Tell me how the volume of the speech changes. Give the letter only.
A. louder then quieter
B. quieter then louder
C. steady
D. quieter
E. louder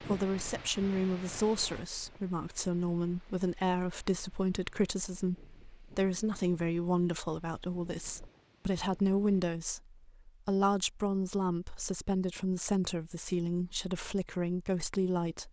C.